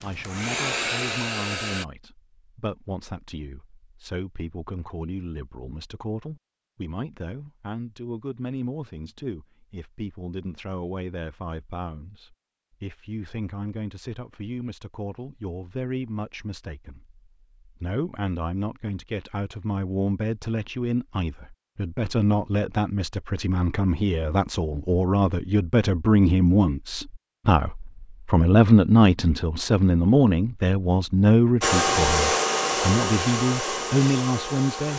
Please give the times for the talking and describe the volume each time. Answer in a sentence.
The talking can be heard from 0.0 to 34.9 s, getting louder.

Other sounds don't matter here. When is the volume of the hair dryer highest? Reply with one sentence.
The loudest moment of the hair dryer is at 32 seconds.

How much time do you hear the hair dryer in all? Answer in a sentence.
The hair dryer can be heard for 5 seconds in total.